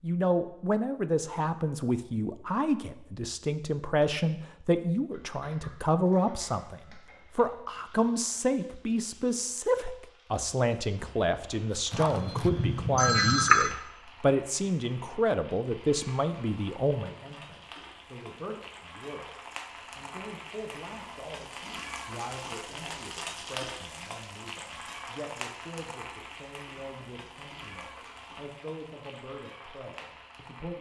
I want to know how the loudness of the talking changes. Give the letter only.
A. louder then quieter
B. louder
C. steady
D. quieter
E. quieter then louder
D.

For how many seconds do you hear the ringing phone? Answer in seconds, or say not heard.
2 s.